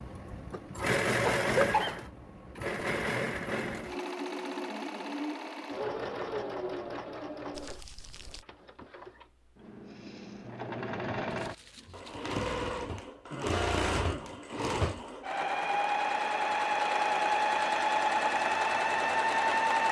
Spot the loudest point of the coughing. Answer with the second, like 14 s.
2 s.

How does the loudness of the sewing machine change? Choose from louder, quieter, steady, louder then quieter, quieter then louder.
quieter then louder.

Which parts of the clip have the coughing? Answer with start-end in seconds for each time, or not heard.
1.2-2.0, 13.3-15.1.